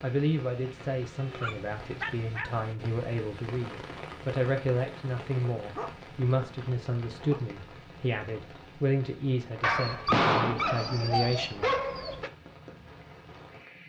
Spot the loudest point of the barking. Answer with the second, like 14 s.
10 s.